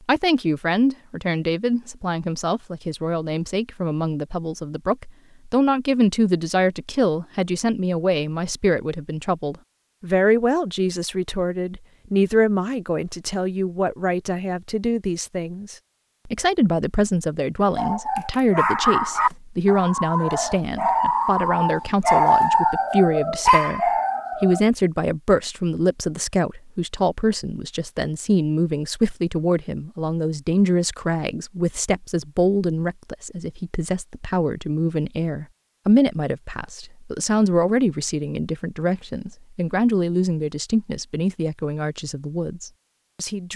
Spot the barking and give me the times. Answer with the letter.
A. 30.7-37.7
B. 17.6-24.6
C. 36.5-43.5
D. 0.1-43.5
B.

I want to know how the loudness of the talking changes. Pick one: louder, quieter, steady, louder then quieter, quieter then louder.
steady.